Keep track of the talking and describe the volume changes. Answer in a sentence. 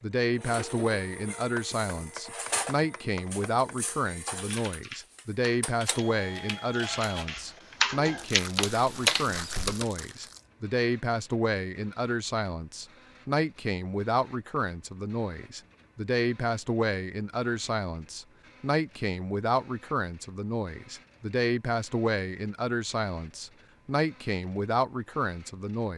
The volume of the talking stays about the same.